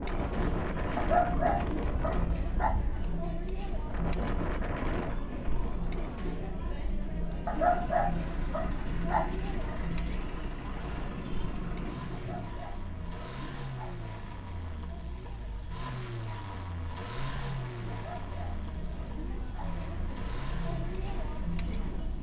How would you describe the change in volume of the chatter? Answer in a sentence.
The volume of the chatter goes down, then up.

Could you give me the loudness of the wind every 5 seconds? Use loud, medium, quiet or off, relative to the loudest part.
loud, medium, medium, off, off.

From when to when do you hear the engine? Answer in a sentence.
You can hear the engine from 7.5 to 22.1 s.